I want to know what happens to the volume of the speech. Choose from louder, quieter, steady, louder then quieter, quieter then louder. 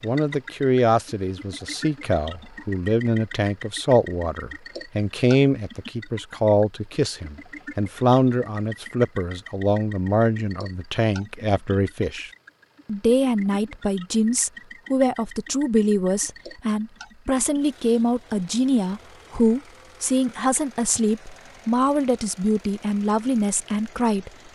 steady.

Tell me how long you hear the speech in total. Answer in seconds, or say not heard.
24 s.